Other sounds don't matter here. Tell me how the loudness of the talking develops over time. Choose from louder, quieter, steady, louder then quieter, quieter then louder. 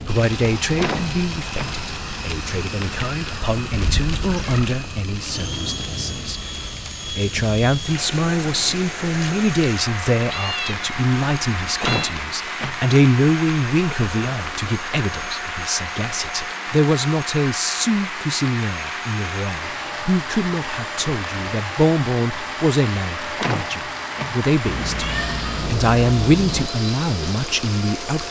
steady.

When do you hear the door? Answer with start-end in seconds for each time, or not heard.
0.8-1.8, 11.8-12.8, 23.4-24.4.